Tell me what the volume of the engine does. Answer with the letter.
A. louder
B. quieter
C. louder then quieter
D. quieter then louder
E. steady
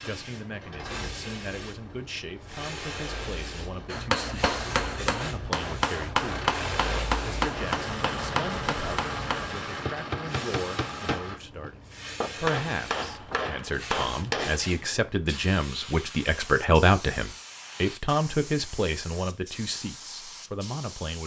A.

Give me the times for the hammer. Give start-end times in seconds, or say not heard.
3.9-14.8.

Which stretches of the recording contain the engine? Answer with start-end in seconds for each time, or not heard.
0.0-11.4.